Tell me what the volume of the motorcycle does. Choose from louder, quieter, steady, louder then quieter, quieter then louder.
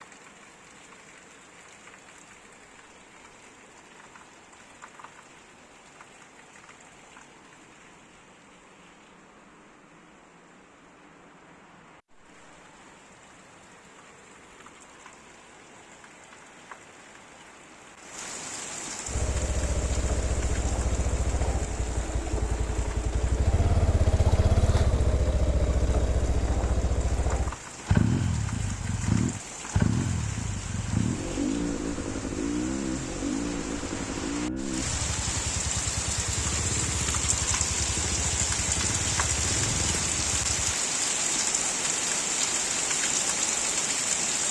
louder then quieter.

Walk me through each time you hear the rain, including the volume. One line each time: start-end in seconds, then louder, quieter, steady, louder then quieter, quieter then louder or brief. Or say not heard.
0.0-44.4 louder.